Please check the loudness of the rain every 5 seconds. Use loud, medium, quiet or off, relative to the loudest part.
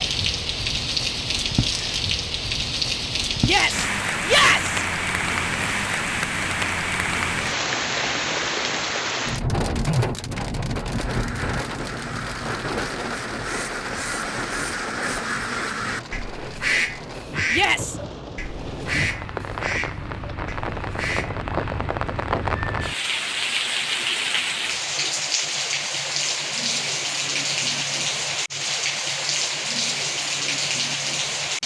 loud, loud, medium, medium, loud, loud, loud.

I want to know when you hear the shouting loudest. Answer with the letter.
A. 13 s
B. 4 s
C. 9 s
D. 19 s
B.